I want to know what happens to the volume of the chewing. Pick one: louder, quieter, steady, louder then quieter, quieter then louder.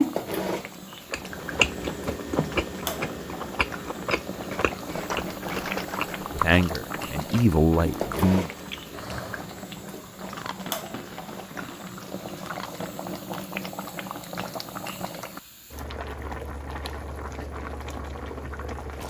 quieter.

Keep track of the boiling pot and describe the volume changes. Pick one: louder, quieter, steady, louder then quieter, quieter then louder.
steady.